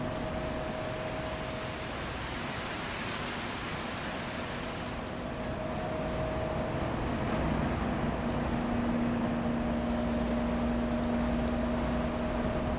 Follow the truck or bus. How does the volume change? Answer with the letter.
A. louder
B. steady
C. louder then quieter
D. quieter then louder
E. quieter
A.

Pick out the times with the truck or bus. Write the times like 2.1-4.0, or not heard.
0.0-12.7.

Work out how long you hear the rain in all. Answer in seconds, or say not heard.
13 s.